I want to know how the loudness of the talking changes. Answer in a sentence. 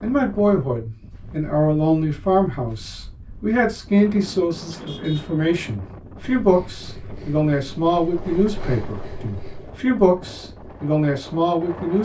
The loudness of the talking stays about the same.